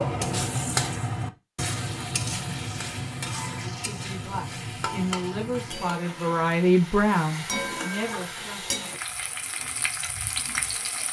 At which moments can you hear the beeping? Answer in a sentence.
You can't hear the beeping here.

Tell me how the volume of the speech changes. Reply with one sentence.
The loudness of the speech goes up, then down.